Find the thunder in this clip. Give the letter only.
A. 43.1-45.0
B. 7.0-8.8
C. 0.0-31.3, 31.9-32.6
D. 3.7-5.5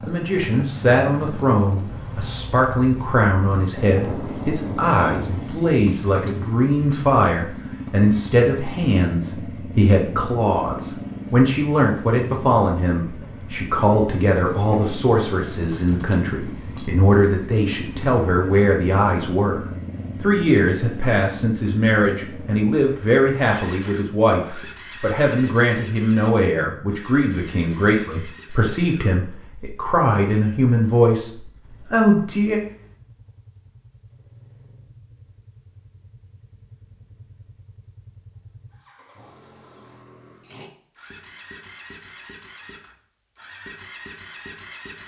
D.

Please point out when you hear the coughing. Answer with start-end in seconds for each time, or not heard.
not heard.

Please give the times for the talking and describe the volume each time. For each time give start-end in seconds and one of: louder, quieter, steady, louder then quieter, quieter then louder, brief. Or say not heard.
0.0-31.3 steady
31.9-32.6 brief.